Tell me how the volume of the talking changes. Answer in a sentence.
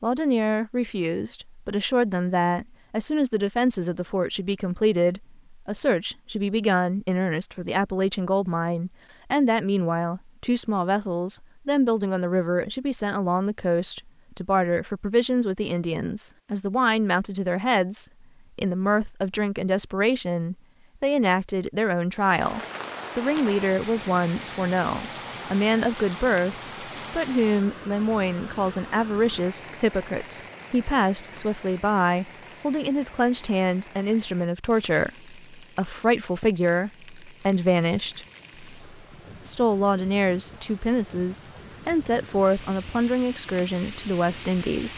The volume of the talking stays about the same.